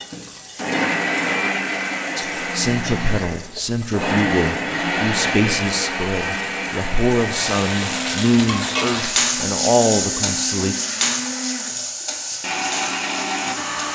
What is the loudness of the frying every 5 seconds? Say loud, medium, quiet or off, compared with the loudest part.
quiet, loud, loud.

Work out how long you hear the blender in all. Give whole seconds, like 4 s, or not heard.
14 s.